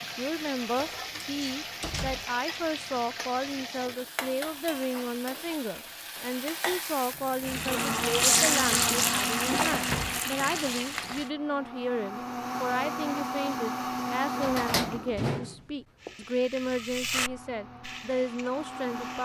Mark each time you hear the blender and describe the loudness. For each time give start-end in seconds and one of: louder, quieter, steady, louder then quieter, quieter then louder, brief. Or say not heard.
7.6-15.2 quieter then louder
17.2-19.2 brief.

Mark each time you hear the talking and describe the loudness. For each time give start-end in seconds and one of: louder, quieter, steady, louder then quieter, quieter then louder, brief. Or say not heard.
0.0-19.2 steady.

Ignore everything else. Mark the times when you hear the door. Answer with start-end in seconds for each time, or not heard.
1.1-2.4, 9.7-10.2, 14.4-16.1.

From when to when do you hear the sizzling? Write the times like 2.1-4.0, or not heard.
0.0-11.3, 15.9-19.2.